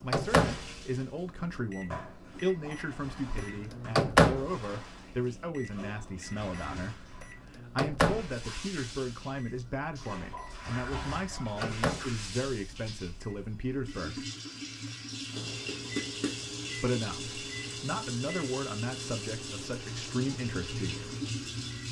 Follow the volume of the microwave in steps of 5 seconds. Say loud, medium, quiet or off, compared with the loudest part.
loud, medium, medium, quiet, quiet.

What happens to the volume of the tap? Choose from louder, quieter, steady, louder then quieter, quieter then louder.
louder.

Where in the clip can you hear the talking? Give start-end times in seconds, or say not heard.
0.0-14.2, 16.8-21.1.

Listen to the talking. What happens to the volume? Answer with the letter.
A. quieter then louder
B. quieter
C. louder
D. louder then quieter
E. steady
E.